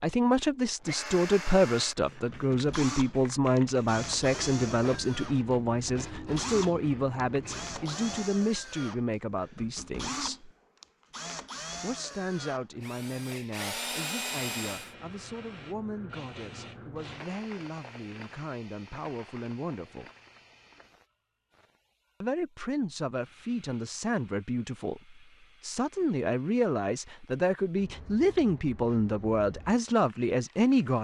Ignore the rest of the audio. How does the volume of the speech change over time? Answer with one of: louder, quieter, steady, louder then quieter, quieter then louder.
quieter then louder.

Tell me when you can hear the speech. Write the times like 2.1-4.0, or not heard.
0.0-10.5, 11.8-20.1, 22.2-30.9.